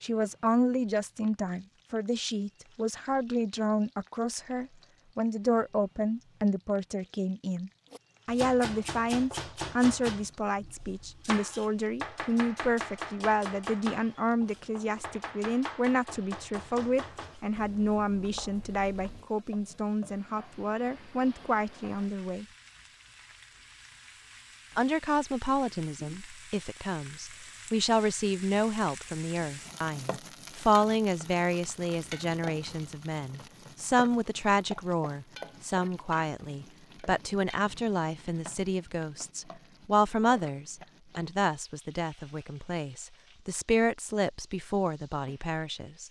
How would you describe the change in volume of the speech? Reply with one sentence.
The volume of the speech stays about the same.